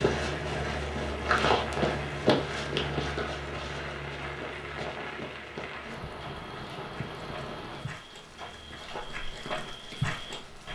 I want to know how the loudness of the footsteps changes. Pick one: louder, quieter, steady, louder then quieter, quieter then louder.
quieter then louder.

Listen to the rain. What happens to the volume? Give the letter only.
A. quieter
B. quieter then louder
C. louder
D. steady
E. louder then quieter
A.